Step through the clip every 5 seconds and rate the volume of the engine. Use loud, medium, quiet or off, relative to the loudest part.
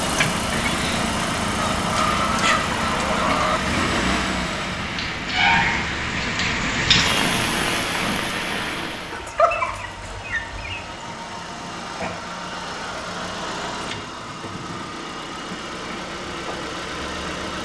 loud, medium, medium, medium.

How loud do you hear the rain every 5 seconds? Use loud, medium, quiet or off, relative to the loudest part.
medium, loud, off, off.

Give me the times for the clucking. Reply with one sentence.
You can hear the clucking from 1.6 to 3.6 s and from 9.1 to 10.9 s.